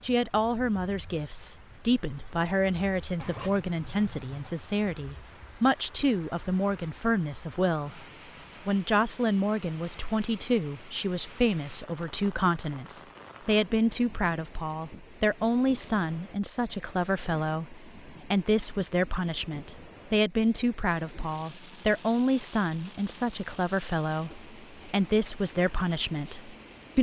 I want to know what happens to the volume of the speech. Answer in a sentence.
The loudness of the speech stays about the same.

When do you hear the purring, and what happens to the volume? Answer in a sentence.
The purring can't be heard in this clip.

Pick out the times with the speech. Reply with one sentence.
You can hear the speech from 0.0 to 8.0 s and from 8.7 to 26.9 s.